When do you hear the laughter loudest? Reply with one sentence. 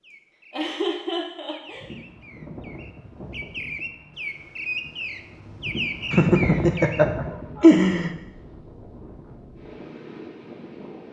The volume of the laughter peaks at 8 seconds.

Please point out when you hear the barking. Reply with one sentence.
The barking can't be heard in this clip.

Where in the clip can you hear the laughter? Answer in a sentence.
You can hear the laughter from 0.5 to 1.9 s and from 6.1 to 8.1 s.